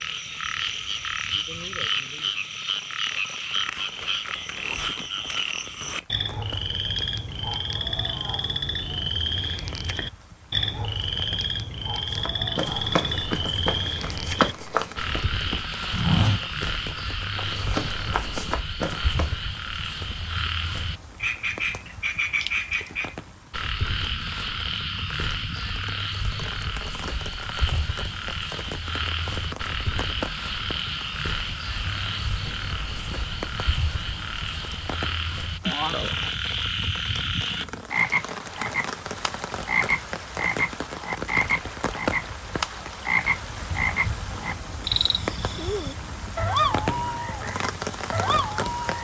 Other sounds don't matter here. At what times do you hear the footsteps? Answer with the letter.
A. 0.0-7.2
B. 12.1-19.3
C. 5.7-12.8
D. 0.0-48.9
B.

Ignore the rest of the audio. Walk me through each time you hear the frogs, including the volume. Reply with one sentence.
You can hear the frogs from 0.0 to 48.9 s, at a steady volume.